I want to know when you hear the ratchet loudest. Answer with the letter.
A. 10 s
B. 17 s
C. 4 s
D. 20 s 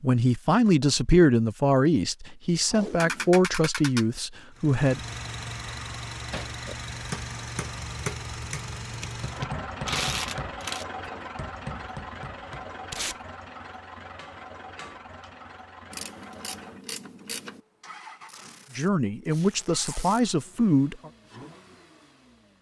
A.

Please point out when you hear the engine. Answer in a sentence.
The engine can be heard from 4.5 to 22.5 s.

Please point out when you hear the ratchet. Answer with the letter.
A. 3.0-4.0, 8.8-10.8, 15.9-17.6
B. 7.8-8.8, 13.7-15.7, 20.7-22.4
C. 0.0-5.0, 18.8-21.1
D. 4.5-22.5
A.